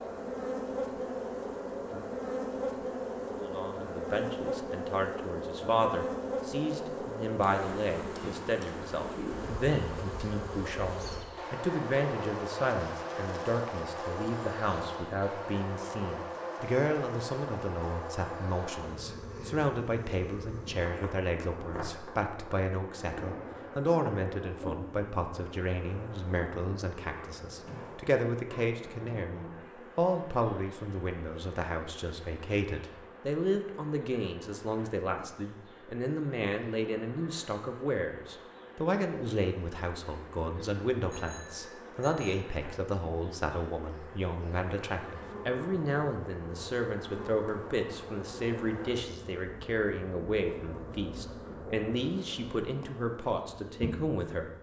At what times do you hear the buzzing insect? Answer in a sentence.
You can hear the buzzing insect from 0.0 to 54.5 s.